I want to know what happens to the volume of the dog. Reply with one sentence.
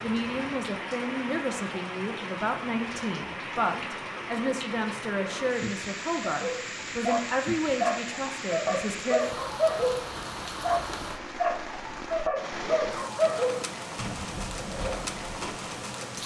The volume of the dog goes down.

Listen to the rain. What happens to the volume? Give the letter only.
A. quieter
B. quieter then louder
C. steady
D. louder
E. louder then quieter
C.